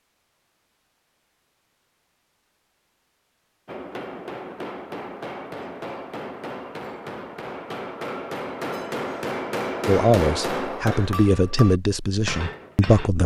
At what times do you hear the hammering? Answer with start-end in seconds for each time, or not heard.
3.6-13.1.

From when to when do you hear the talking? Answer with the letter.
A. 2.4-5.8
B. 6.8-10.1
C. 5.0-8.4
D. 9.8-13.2
D.